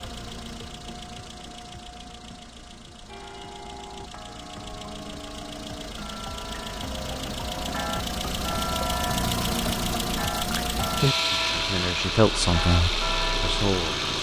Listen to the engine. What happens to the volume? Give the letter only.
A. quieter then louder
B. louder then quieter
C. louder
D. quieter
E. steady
C.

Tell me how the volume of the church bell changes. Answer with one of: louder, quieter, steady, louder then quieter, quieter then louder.
louder.